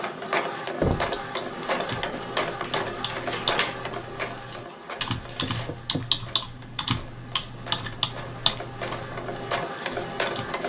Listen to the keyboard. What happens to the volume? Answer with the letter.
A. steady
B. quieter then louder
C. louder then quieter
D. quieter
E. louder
E.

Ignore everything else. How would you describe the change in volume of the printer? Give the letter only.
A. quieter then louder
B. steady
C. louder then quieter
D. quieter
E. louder
A.